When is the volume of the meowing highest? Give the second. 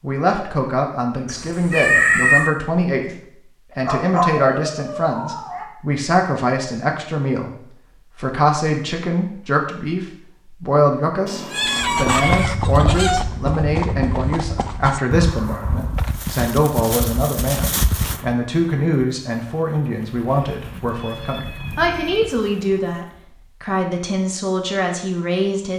2 s.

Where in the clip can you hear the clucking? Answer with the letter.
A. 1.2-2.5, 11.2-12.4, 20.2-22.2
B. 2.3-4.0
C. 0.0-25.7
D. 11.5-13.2
D.